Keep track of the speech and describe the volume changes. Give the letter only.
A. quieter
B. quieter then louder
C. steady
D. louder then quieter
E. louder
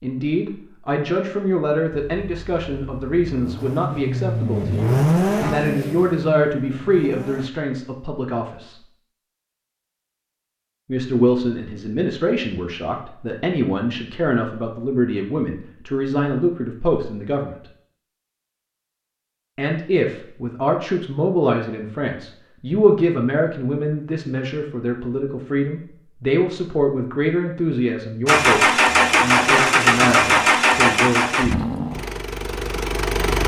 C.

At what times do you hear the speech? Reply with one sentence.
You can hear the speech from 0.0 to 8.8 s, from 10.8 to 17.6 s and from 19.6 to 31.6 s.